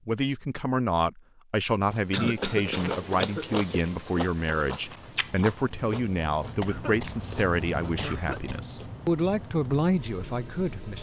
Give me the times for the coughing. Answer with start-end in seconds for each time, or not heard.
2.1-3.5, 6.6-8.6.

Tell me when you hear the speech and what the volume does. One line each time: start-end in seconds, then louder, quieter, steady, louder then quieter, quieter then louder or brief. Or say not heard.
0.1-10.9 steady.